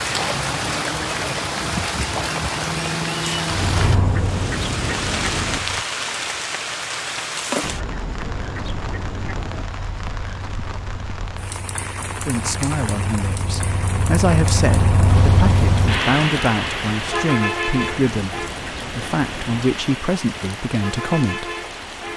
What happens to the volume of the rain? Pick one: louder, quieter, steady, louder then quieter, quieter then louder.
quieter.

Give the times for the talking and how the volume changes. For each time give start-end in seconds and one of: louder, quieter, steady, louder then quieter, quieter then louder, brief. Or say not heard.
12.2-21.4 steady.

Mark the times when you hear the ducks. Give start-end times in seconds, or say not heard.
3.5-5.6, 7.6-9.7, 17.9-19.6.